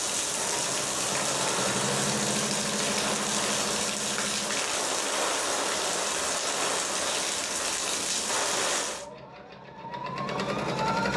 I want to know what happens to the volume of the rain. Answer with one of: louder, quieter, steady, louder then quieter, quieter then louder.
steady.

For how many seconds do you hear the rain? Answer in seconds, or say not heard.
9 s.